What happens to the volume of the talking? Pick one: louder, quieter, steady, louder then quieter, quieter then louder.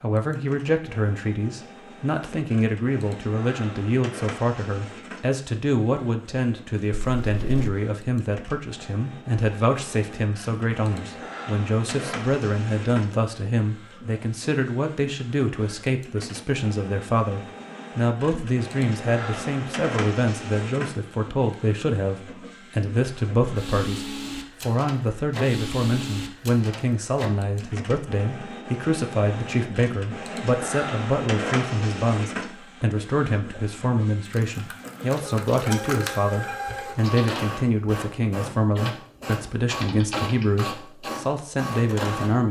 steady.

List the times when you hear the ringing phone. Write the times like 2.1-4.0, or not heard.
not heard.